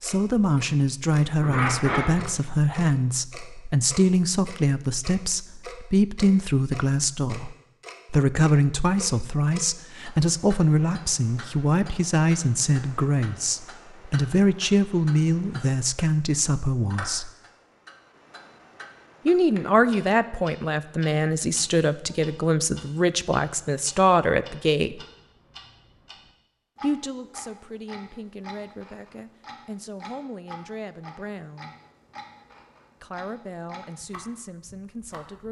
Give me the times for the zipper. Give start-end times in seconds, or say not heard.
1.4-2.3.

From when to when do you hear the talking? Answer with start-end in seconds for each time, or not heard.
0.0-17.3, 19.2-25.0, 26.8-31.8, 33.0-35.4.